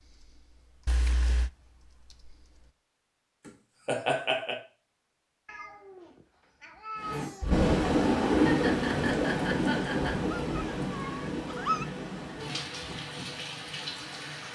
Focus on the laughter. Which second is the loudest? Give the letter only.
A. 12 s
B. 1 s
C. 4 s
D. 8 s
C.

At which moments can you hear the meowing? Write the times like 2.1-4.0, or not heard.
0.8-1.5, 5.5-7.5, 10.5-11.8.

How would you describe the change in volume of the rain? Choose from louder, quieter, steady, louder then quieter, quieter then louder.
quieter.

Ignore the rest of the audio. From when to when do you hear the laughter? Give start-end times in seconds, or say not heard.
3.5-4.5, 8.3-10.2.